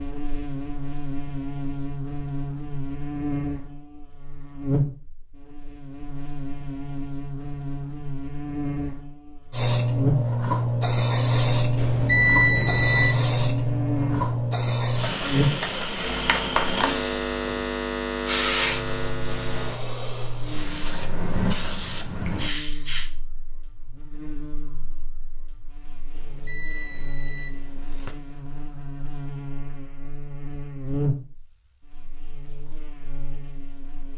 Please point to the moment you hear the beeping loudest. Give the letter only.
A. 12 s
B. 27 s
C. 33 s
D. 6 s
A.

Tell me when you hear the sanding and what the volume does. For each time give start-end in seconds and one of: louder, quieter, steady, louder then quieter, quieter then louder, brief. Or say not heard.
not heard.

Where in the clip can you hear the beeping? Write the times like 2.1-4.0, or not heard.
11.8-13.2, 26.1-28.1.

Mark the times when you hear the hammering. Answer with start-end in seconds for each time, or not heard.
not heard.